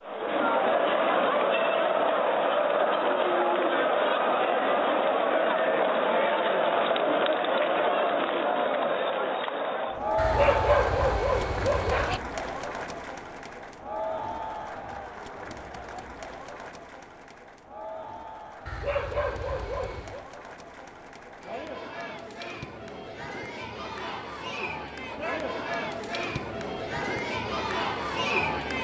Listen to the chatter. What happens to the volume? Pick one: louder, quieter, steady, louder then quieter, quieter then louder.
quieter then louder.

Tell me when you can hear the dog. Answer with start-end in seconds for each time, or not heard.
10.2-12.2, 18.6-20.2.